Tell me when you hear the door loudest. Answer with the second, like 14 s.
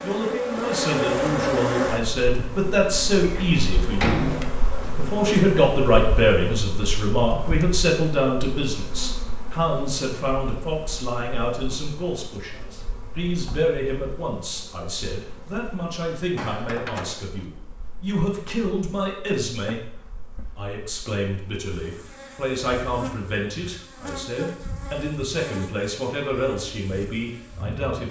4 s.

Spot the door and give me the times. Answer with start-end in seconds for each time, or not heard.
3.2-4.7, 16.4-17.2.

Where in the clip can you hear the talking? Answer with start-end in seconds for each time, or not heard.
0.0-19.8, 20.6-28.0.